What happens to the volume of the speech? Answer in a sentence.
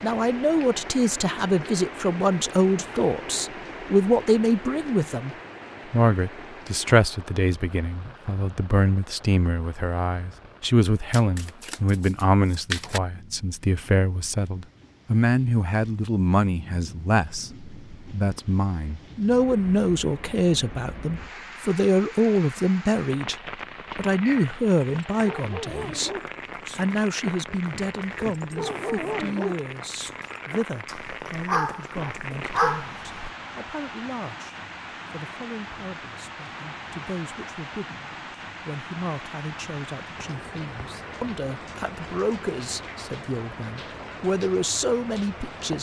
The loudness of the speech goes down.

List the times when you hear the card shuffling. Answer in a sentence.
The card shuffling can be heard from 11.1 to 13.0 s.